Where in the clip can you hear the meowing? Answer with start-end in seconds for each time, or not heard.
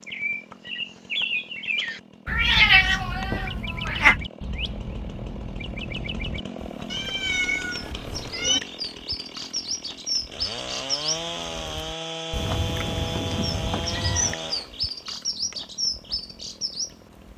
2.2-4.2, 6.9-8.6, 12.3-14.3.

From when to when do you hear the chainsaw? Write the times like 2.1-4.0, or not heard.
0.0-17.3.